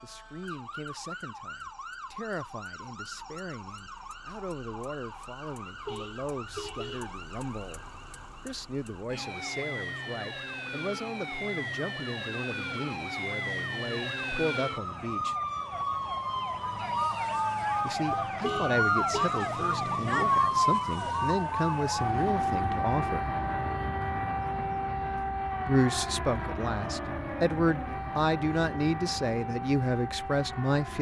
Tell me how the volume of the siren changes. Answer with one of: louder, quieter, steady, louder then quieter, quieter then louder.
louder then quieter.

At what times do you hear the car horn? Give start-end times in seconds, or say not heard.
5.8-7.2, 18.4-19.3.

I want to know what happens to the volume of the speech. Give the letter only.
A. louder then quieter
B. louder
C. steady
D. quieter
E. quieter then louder
B.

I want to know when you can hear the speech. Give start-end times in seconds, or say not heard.
0.0-7.8, 8.4-15.3, 17.8-23.3, 25.6-30.9.